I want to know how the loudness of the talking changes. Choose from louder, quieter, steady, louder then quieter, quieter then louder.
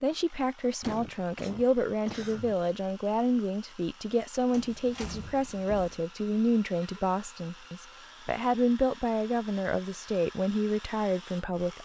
steady.